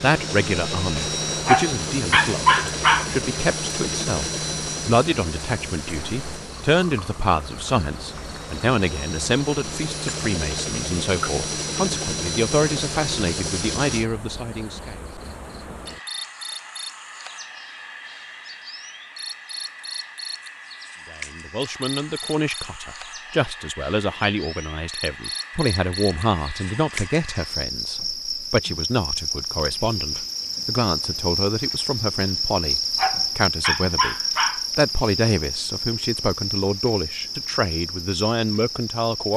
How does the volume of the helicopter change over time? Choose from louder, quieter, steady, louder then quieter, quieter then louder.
quieter then louder.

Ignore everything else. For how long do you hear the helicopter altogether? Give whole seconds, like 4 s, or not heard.
14 s.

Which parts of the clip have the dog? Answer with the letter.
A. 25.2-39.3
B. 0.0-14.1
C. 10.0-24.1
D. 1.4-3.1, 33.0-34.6
D.